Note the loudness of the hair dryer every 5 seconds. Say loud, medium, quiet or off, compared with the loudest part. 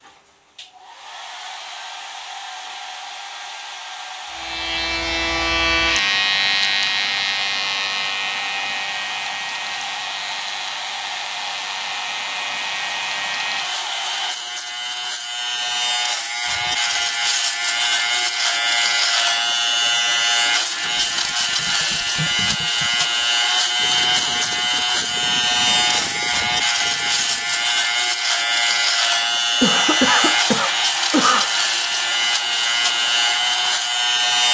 medium, loud, loud, off, off, off, loud.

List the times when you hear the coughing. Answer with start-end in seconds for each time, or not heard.
29.6-31.5.